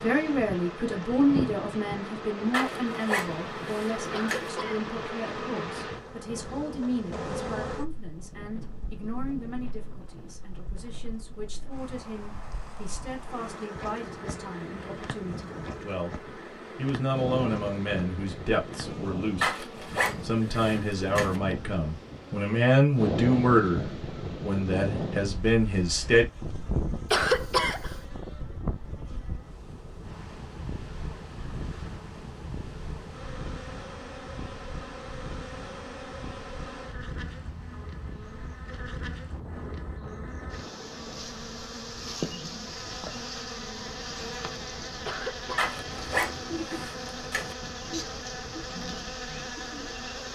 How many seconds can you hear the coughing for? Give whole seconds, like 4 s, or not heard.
2 s.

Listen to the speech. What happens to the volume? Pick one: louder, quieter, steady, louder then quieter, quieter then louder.
quieter then louder.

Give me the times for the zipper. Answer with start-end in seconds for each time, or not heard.
2.5-4.5, 19.4-21.4, 45.5-47.5.